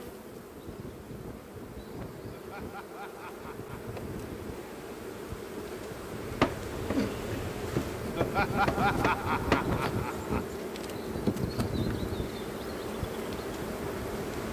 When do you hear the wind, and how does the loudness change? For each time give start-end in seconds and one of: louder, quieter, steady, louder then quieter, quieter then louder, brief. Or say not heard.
0.0-14.4 louder.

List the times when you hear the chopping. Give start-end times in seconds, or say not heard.
6.2-9.8.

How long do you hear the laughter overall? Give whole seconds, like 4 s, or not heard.
4 s.